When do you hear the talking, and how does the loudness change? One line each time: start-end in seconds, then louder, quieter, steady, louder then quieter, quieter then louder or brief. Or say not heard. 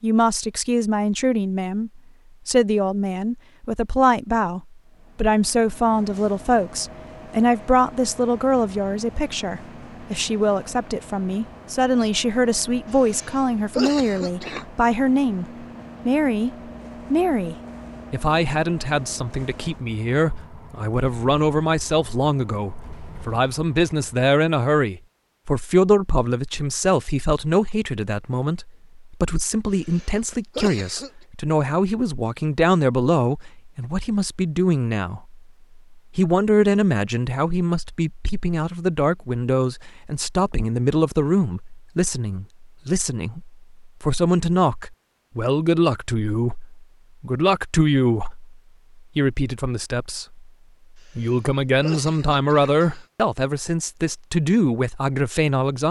0.0-16.5 steady
17.1-55.8 steady.